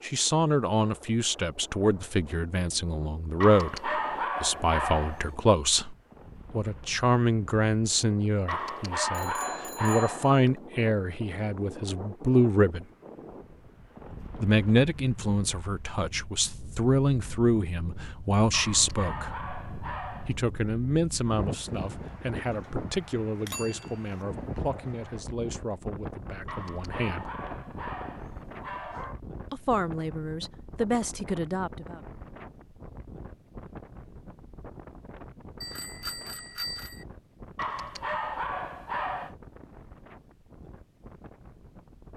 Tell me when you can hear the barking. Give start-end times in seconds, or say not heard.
3.4-5.3, 8.4-10.4, 18.5-20.4, 26.4-29.2, 37.5-39.4.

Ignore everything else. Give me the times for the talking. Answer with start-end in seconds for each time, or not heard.
0.0-12.8, 14.4-19.4, 20.2-27.3, 29.5-32.0.